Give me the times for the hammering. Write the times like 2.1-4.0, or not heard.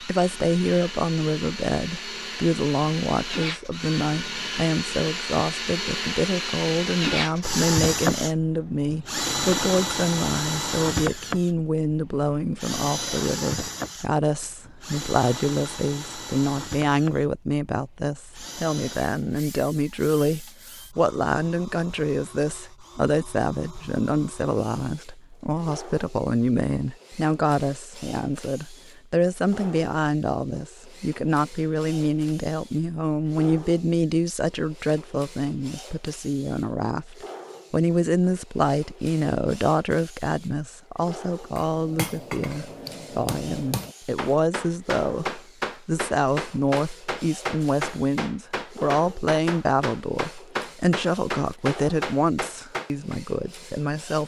41.5-53.2.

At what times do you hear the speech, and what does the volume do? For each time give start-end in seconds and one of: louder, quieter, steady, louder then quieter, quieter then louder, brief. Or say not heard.
0.0-54.2 steady.